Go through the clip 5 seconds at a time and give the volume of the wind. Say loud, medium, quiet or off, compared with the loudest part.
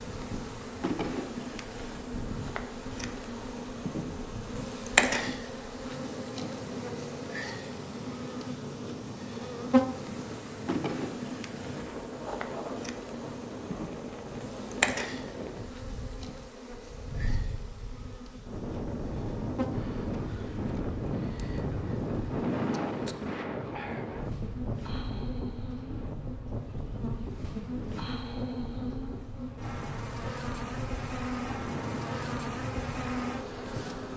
medium, medium, medium, medium, loud, medium, medium.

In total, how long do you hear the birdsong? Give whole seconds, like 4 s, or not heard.
not heard.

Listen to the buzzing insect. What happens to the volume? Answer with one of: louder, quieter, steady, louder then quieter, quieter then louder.
quieter then louder.